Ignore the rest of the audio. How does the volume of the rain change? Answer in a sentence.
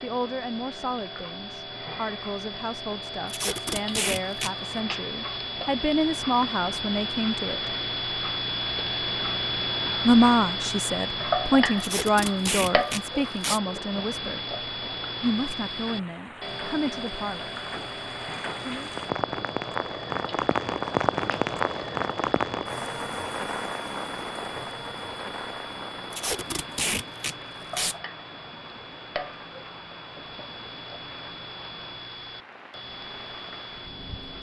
The loudness of the rain goes up, then down.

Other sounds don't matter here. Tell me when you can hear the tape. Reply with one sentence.
The tape can be heard from 3.2 to 4.5 s, from 11.8 to 13.6 s and from 26.1 to 27.9 s.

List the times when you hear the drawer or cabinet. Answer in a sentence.
The drawer or cabinet can't be heard in this clip.